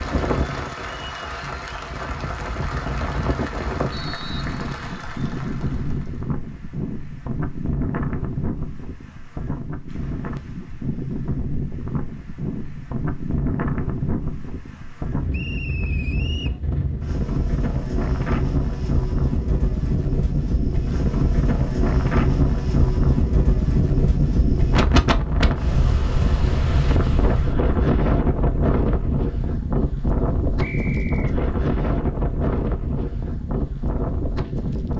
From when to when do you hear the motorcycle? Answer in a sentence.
You can't hear the motorcycle here.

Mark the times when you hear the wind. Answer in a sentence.
The wind can be heard from 0.0 to 34.9 s.